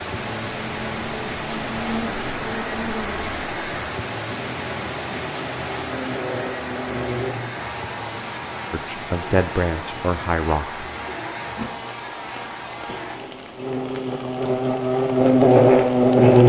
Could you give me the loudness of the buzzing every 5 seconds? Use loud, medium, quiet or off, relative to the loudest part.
quiet, quiet, quiet, loud.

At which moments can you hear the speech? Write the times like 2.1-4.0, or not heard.
8.7-10.8.